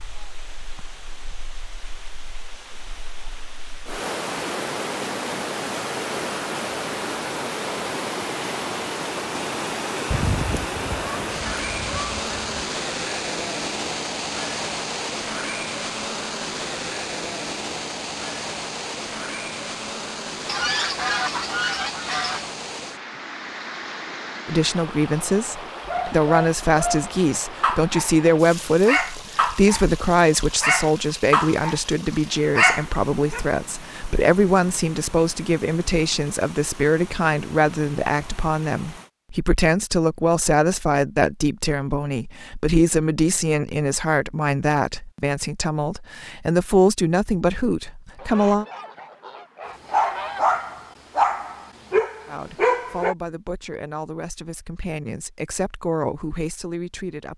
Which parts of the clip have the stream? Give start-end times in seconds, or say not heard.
0.0-39.1.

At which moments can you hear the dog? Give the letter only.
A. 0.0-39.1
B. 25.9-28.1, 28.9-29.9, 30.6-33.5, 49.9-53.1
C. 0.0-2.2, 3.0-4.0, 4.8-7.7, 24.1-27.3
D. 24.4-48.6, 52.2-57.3
B.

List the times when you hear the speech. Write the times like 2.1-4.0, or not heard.
24.4-48.6, 52.2-57.3.